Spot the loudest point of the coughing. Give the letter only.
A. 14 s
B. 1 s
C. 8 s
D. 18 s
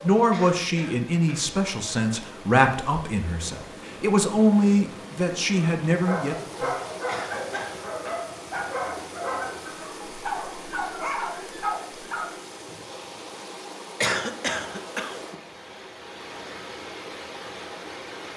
A.